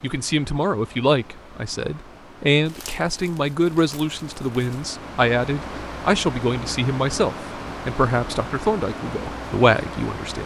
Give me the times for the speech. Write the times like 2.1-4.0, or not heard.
0.0-10.4.